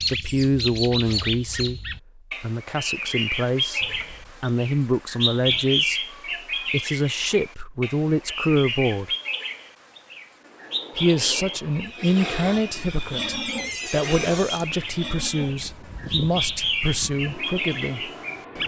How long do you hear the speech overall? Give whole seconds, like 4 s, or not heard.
15 s.